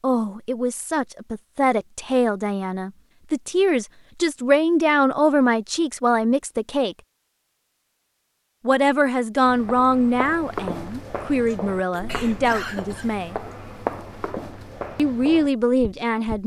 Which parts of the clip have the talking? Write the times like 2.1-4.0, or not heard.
0.0-7.0, 8.7-13.3, 14.9-16.4.